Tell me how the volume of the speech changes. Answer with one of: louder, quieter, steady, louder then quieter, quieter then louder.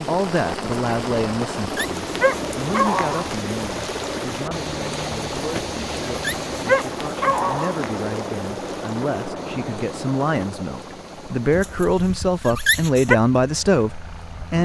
quieter then louder.